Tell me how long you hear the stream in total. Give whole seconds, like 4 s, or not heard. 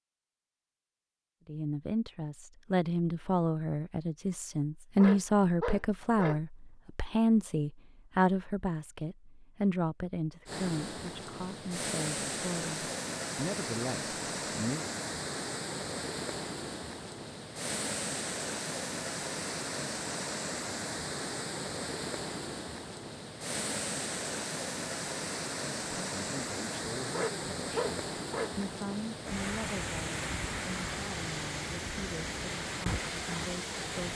24 s.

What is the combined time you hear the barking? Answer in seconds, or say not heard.
3 s.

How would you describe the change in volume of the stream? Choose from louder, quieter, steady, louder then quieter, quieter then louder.
steady.